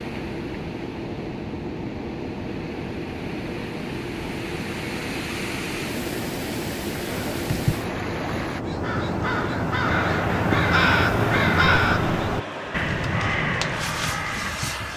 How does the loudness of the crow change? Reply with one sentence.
The volume of the crow goes up, then down.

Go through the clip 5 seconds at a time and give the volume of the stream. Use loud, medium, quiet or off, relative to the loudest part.
medium, loud, off.